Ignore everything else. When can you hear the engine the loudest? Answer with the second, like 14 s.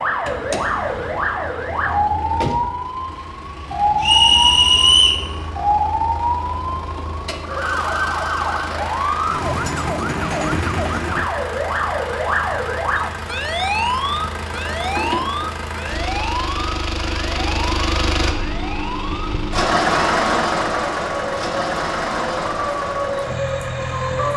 20 s.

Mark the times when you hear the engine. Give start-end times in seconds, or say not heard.
0.0-24.3.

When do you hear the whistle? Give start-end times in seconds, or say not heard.
4.0-5.2.